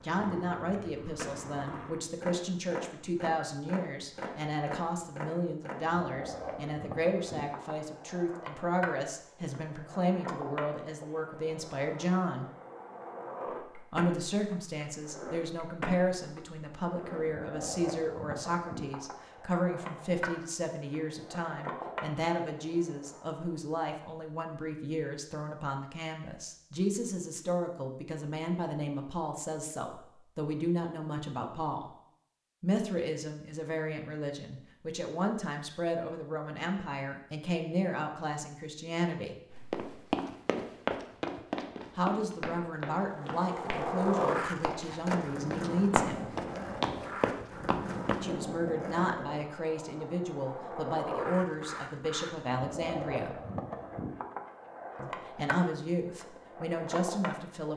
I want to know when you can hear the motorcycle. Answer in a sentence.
You can't hear the motorcycle here.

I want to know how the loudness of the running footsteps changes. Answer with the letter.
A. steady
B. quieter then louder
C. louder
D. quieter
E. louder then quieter
B.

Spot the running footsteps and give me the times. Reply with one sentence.
You can hear the running footsteps from 39.5 to 48.2 s.